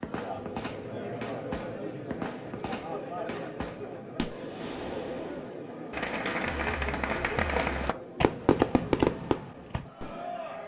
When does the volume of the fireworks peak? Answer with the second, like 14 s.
9 s.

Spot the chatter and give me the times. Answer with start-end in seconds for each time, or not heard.
0.0-10.6.